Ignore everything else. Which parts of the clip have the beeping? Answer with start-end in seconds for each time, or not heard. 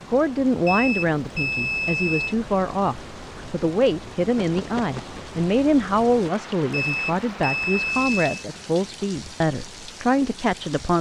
0.7-2.4, 6.7-8.4.